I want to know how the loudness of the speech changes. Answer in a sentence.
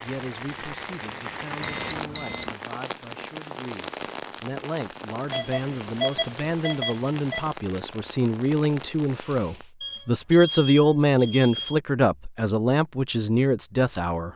The volume of the speech goes up.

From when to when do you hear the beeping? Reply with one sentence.
The beeping can be heard from 1.6 to 2.5 s, from 5.3 to 7.5 s and from 9.8 to 11.8 s.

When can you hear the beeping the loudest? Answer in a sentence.
The volume of the beeping peaks at 2 seconds.